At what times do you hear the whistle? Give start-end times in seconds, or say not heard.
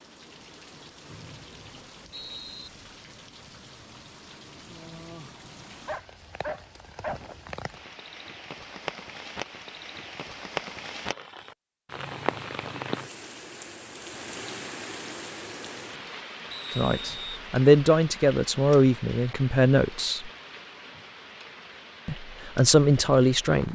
1.1-2.7, 16.5-17.4.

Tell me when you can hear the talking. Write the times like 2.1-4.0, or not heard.
16.8-20.3, 22.1-23.7.